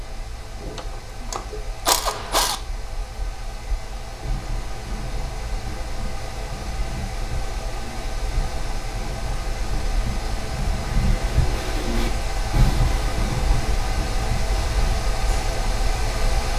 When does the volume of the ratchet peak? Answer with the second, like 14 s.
2 s.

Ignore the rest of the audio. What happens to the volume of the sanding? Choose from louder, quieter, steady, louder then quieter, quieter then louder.
louder.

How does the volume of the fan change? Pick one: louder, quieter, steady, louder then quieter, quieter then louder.
louder.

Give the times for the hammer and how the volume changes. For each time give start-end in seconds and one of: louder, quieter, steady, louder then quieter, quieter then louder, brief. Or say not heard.
not heard.